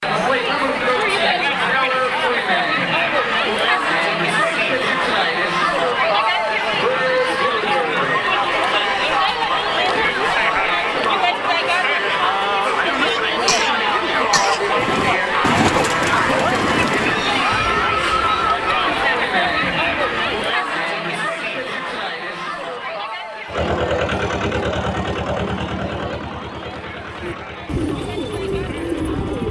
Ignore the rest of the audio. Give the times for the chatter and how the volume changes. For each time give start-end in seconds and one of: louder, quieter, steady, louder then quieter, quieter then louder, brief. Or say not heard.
0.0-29.4 quieter.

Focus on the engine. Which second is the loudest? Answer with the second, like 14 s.
24 s.